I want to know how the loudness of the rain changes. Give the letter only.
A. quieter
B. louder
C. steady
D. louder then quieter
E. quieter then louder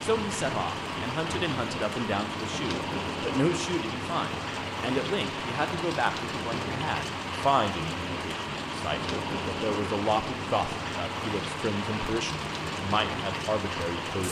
C.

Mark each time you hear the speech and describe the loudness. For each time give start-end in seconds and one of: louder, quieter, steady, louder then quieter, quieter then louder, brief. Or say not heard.
0.0-14.2 steady.